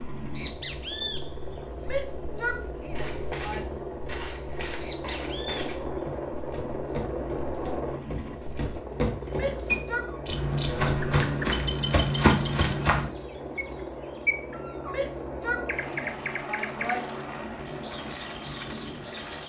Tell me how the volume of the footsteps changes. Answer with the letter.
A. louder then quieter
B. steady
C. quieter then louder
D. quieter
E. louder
E.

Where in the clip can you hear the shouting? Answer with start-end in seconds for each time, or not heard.
1.8-3.8, 9.3-10.1, 14.8-17.1.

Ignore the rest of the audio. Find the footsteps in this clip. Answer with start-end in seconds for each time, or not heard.
2.9-13.1.